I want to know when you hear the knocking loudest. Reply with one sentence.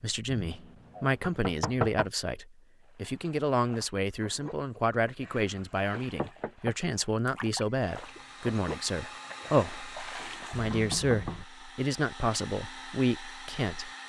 The loudest moment of the knocking is at 2 seconds.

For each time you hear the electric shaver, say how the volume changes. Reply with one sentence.
The electric shaver can't be heard in this clip.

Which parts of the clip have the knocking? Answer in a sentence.
The knocking can be heard from 0.3 to 2.0 s, from 5.9 to 6.8 s and from 10.5 to 11.4 s.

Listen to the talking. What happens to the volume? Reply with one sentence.
The volume of the talking stays about the same.